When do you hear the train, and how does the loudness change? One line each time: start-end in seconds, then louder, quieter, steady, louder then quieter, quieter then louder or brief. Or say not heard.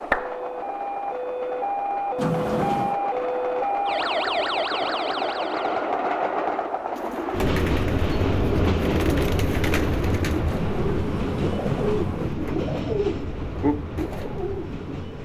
0.0-15.2 louder then quieter.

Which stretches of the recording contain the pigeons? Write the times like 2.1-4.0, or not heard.
6.9-14.9.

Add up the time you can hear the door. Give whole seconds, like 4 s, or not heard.
3 s.